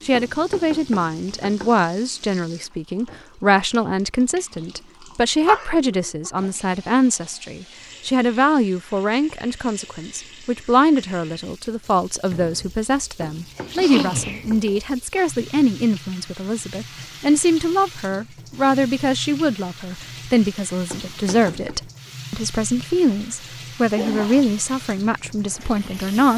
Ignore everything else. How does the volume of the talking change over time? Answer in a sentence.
The volume of the talking stays about the same.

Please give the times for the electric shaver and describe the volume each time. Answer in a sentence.
The electric shaver can't be heard in this clip.